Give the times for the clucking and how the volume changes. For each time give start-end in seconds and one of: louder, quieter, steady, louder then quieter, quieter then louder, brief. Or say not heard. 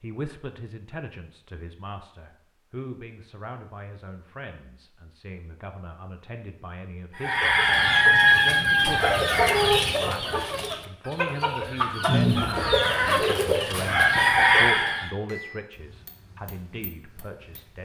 7.2-15.2 quieter then louder.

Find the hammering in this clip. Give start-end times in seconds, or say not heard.
15.2-17.8.